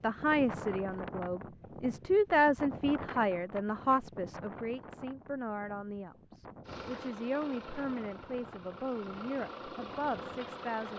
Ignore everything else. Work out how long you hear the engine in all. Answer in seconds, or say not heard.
4 s.